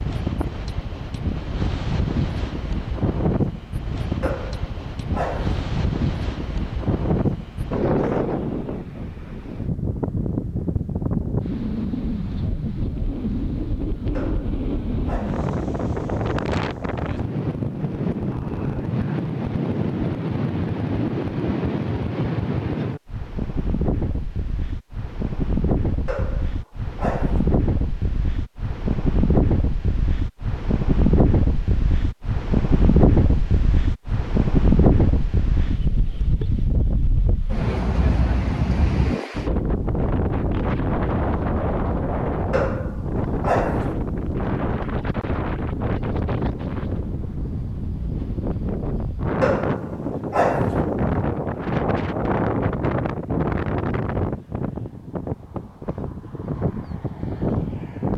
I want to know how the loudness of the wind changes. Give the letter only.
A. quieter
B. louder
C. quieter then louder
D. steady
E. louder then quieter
D.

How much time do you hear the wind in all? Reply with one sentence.
You can hear the wind for 58 seconds altogether.